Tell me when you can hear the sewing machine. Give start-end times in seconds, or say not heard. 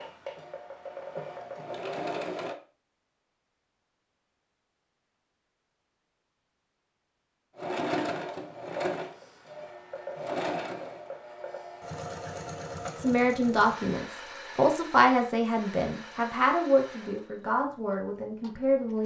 0.0-2.5, 7.5-19.0.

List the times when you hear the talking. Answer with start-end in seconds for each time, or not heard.
12.9-19.0.